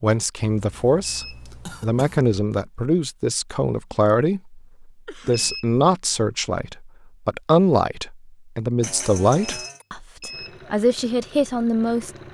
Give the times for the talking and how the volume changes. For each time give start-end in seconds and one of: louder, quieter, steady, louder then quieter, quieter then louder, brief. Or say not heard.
0.0-12.1 steady.